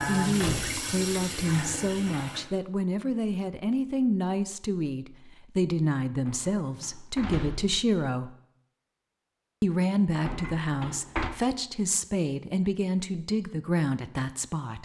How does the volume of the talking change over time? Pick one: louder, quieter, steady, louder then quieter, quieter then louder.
steady.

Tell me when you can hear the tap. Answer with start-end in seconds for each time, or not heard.
0.0-2.5.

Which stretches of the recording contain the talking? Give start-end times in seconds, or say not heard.
0.1-8.3, 9.6-14.8.